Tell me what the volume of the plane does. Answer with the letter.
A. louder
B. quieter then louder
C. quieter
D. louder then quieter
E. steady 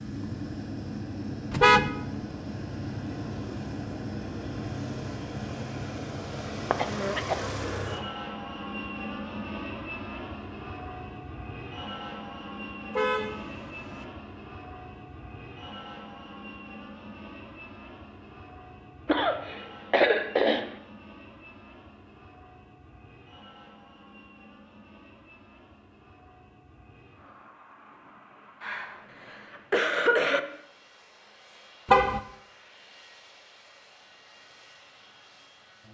C.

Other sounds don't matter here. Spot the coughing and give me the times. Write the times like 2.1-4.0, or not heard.
6.7-7.5, 19.1-20.8, 28.6-30.4.